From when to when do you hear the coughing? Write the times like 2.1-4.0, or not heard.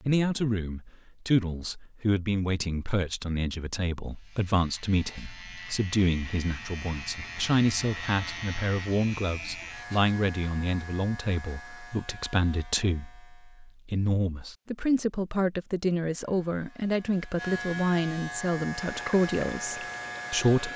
not heard.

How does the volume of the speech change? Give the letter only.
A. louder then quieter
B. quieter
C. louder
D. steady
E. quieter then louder
D.